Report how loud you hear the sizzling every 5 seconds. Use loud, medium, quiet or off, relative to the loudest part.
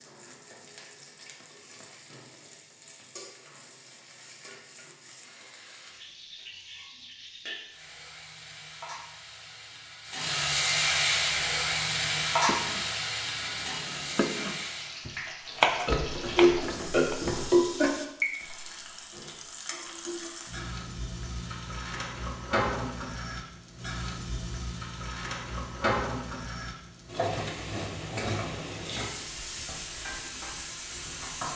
quiet, quiet, loud, medium, medium, medium, medium.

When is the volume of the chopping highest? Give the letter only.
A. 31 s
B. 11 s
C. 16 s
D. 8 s
C.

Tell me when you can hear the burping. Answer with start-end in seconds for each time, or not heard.
15.8-17.9.